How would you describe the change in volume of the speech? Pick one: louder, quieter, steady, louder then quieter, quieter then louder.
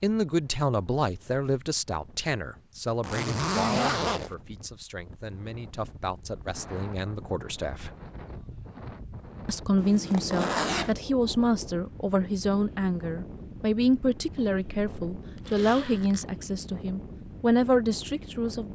quieter then louder.